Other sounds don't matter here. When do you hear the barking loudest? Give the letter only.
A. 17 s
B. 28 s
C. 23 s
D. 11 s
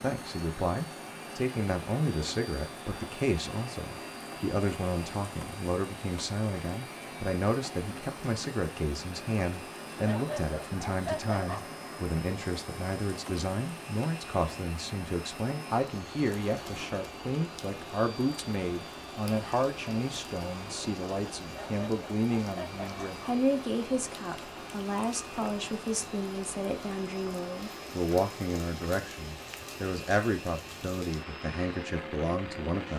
D.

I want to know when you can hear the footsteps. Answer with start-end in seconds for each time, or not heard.
not heard.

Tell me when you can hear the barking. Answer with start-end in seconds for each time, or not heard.
10.1-11.7, 21.5-23.2.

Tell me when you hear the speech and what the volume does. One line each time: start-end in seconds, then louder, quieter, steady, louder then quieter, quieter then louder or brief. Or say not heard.
0.0-32.9 steady.